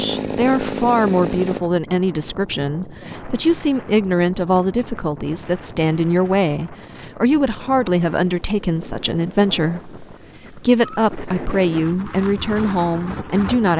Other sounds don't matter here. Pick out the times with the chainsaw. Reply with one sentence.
The chainsaw can be heard from 0.0 to 1.6 s.